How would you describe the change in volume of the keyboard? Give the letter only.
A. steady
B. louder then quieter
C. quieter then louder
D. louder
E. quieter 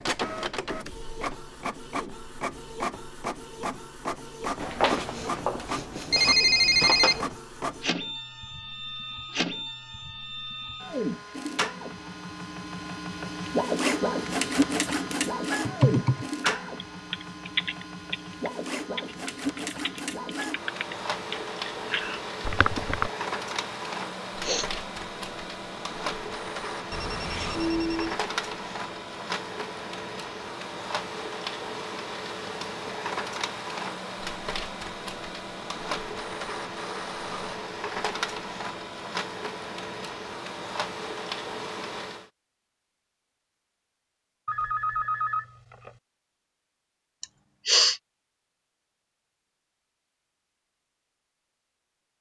C.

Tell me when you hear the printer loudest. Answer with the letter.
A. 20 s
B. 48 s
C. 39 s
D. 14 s
D.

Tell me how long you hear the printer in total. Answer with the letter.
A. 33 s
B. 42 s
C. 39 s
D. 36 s
B.